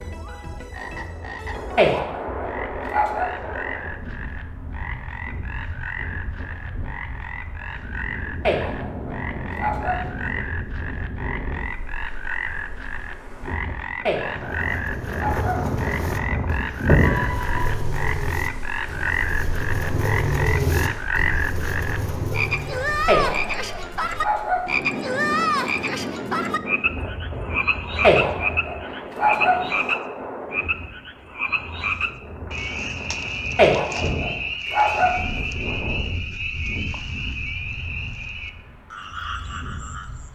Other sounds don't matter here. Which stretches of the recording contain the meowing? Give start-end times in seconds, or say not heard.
17.0-17.8.